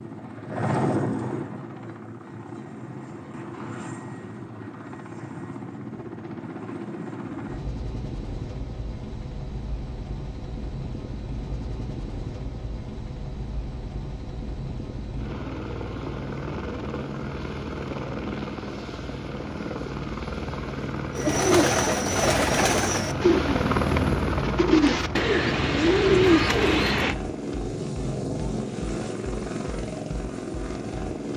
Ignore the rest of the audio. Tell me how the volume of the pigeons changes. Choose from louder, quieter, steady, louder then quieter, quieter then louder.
quieter then louder.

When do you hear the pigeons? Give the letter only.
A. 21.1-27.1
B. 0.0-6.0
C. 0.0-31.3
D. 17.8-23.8
A.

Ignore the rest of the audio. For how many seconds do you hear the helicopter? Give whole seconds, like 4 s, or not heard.
31 s.